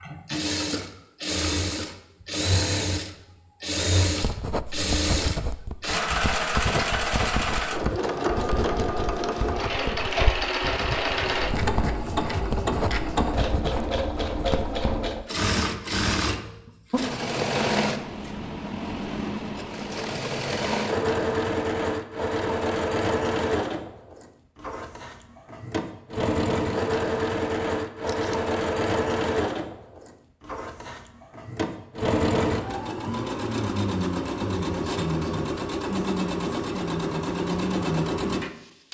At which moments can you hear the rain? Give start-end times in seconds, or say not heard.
not heard.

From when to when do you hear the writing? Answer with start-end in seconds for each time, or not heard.
4.2-14.9.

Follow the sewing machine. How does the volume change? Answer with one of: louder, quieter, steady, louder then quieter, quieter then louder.
steady.